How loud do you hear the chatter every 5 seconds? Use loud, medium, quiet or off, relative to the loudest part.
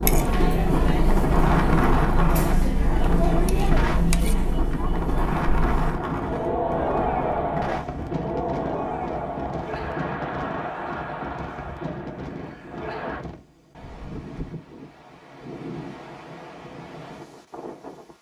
loud, loud, medium, off.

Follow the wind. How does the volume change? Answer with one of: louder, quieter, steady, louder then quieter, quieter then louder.
quieter.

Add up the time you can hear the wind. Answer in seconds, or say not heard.
18 s.